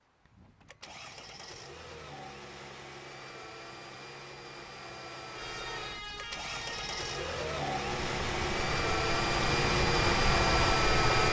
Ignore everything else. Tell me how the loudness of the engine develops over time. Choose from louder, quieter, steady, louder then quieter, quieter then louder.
louder.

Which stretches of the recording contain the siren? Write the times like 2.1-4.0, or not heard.
5.3-11.2.